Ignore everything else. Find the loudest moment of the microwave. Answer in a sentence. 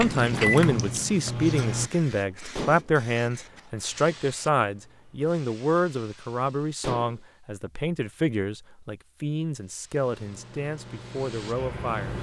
The volume of the microwave peaks at 1 second.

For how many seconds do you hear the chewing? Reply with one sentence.
You can hear the chewing for 2 seconds altogether.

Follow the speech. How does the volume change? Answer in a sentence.
The loudness of the speech goes down.